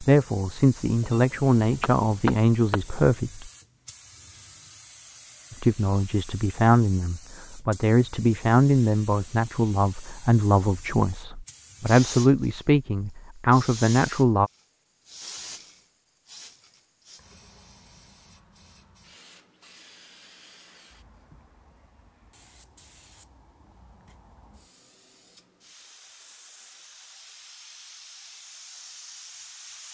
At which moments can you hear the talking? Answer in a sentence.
You can hear the talking from 0.0 to 3.5 s and from 5.5 to 14.5 s.